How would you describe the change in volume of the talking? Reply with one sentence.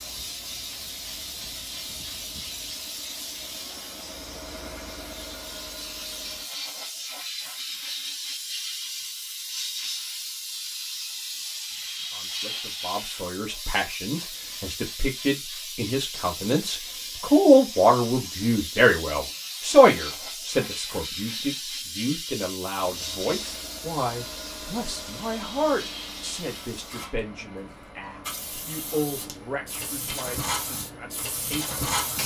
The loudness of the talking goes up, then down.